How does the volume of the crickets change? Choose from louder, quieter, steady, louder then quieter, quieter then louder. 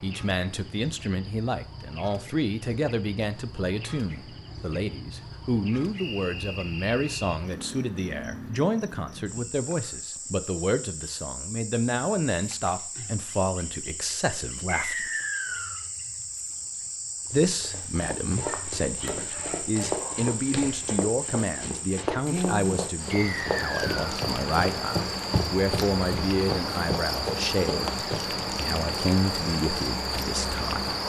louder.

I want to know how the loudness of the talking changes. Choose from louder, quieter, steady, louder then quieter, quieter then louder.
steady.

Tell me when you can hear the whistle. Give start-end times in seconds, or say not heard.
6.0-7.4, 14.7-15.8, 23.1-23.9.